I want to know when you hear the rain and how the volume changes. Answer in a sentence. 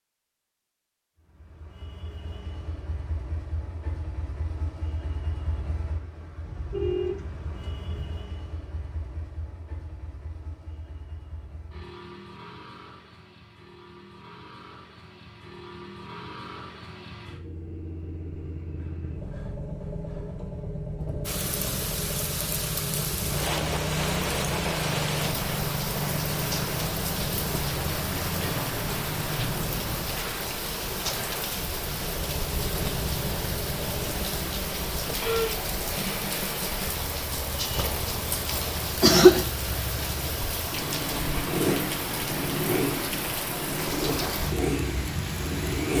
The rain can be heard from 21.2 to 45.9 s, at a steady volume.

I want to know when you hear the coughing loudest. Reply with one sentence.
The loudest moment of the coughing is at 39 seconds.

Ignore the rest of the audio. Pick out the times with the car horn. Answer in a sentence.
The car horn can be heard from 6.5 to 8.1 s.